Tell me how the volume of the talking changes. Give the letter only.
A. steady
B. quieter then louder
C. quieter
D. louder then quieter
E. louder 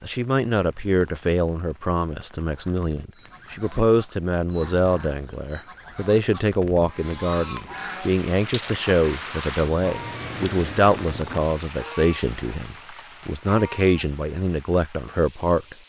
A.